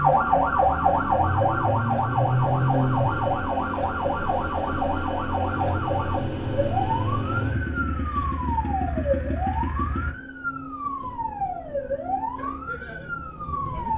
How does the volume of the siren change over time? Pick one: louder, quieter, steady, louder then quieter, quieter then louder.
quieter.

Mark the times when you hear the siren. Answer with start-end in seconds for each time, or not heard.
0.0-13.9.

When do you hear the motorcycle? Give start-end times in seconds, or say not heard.
0.0-10.2.